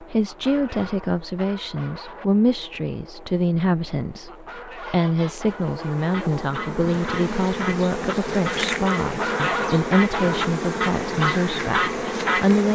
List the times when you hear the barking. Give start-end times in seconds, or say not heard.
0.2-2.2, 4.2-6.2, 9.0-10.5.